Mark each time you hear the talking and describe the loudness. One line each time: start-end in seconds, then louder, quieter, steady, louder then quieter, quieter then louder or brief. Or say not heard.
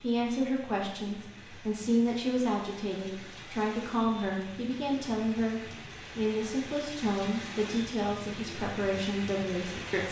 0.0-10.0 steady.